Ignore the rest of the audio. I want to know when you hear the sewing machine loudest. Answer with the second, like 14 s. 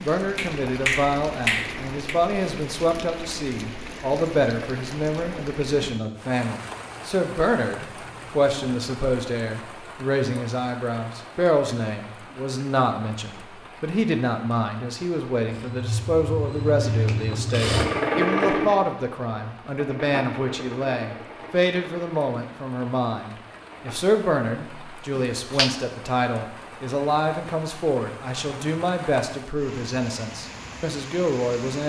18 s.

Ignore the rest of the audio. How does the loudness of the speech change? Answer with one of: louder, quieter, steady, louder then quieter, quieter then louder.
steady.